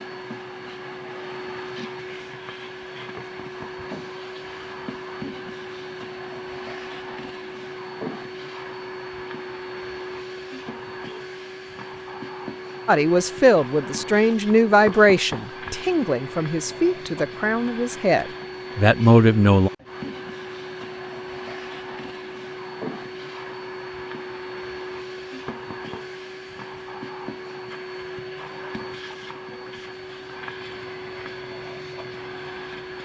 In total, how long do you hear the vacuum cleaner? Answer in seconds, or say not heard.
33 s.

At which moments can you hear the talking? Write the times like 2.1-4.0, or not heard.
12.8-19.7.